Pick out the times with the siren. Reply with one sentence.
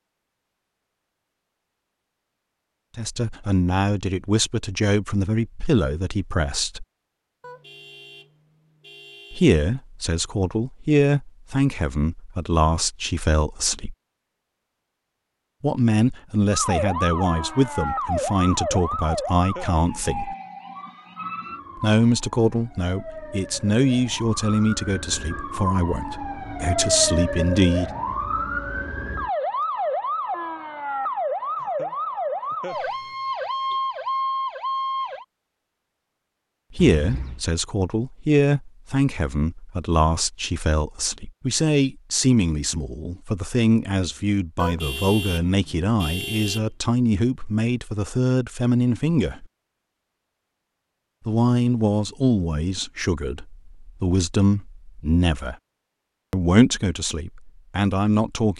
The siren can be heard from 16.5 to 35.2 s.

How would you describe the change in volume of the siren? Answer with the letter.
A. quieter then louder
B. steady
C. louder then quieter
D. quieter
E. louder
A.